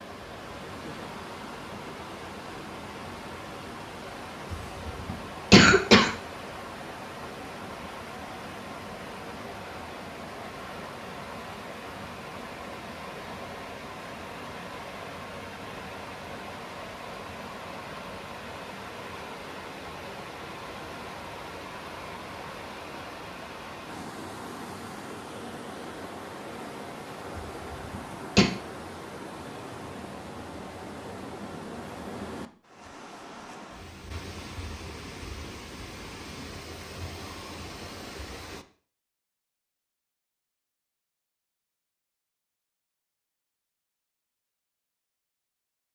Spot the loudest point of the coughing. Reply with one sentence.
The volume of the coughing peaks at 6 seconds.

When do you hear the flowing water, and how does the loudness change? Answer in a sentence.
The flowing water can be heard from 0.0 to 38.6 s, at a steady volume.